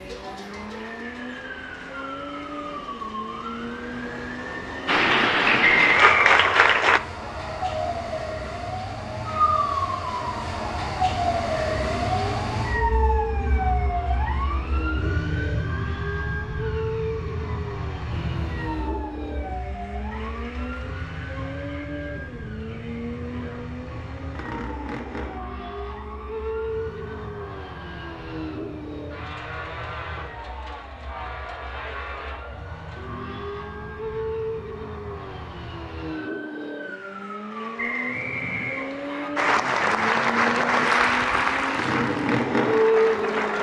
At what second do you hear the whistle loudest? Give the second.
6 s.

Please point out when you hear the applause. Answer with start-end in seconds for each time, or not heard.
4.8-7.0, 39.4-43.5.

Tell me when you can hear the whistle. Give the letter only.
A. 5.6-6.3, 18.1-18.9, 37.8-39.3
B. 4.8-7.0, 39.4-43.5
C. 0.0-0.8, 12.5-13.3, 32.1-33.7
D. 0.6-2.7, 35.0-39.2
A.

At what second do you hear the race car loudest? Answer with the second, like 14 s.
43 s.